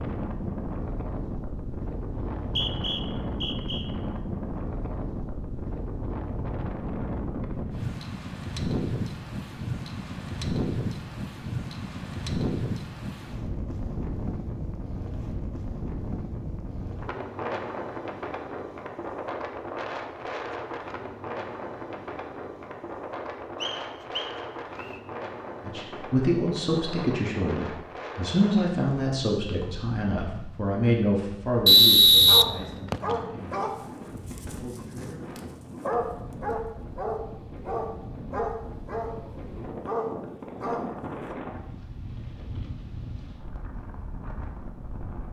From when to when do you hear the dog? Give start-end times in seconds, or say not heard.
32.2-41.4.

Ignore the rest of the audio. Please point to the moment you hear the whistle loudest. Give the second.
32 s.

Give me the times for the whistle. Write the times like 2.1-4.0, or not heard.
2.4-3.9, 23.6-25.0, 31.6-33.1.